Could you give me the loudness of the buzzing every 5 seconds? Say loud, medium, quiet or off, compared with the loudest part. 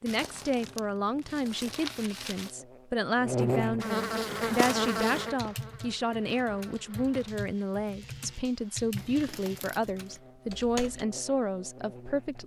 loud, medium, quiet.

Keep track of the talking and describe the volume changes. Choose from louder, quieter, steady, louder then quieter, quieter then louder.
steady.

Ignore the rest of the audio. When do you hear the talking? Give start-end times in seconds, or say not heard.
0.0-12.4.